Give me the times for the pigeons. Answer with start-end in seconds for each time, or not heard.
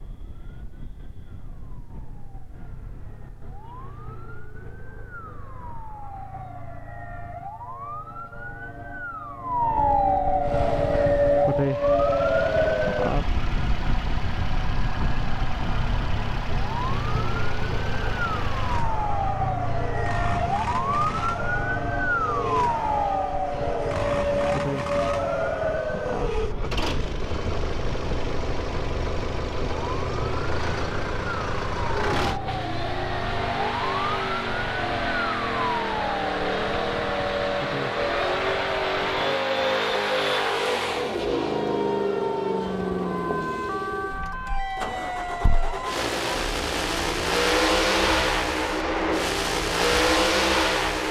not heard.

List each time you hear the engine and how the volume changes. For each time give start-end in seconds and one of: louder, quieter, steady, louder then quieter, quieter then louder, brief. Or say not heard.
10.4-51.0 louder.